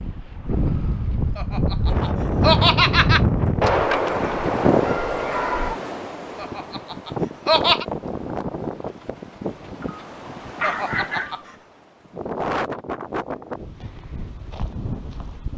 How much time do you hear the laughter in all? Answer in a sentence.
You can hear the laughter for 4 seconds altogether.